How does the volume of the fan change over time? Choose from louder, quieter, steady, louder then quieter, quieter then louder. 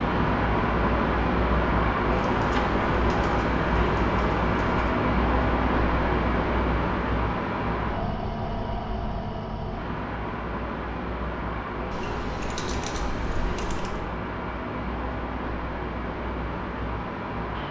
quieter.